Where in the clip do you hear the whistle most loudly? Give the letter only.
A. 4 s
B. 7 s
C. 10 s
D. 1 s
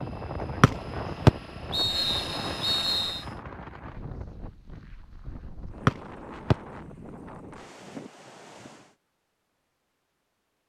D.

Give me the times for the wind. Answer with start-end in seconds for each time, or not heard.
0.0-8.9.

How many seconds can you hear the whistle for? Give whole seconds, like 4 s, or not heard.
3 s.